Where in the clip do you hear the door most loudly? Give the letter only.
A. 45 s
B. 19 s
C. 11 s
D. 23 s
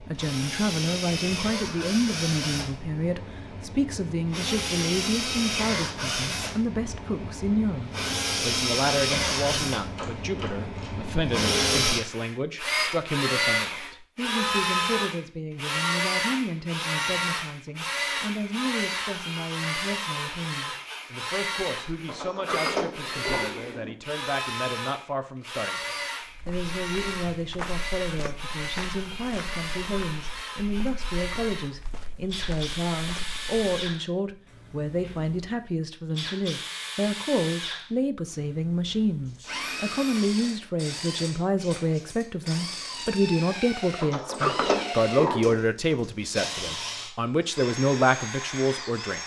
A.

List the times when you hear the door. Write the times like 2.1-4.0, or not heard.
9.9-10.9, 22.1-23.9, 44.0-45.6.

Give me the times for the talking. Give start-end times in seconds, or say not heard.
0.0-49.2.